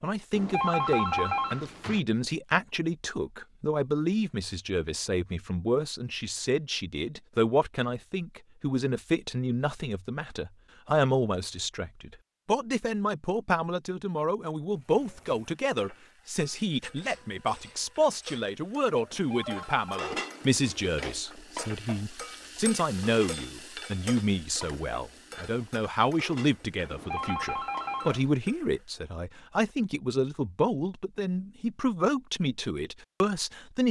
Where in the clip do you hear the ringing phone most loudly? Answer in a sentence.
The loudest moment of the ringing phone is at 1 second.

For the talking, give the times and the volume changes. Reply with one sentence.
The talking can be heard from 0.0 to 33.8 s, at a steady volume.